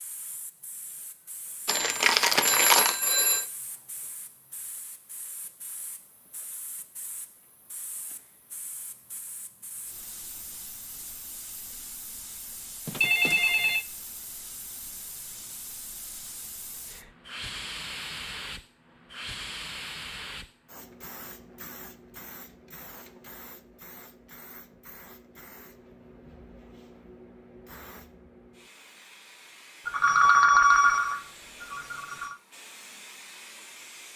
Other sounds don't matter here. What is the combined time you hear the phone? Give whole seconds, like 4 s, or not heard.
5 s.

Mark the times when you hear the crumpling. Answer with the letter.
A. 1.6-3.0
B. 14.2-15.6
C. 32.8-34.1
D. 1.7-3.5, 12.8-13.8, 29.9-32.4
A.